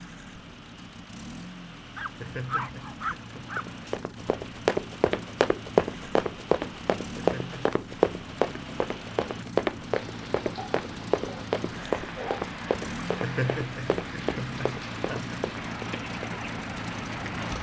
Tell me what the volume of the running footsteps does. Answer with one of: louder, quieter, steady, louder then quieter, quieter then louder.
quieter.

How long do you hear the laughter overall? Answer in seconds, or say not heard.
4 s.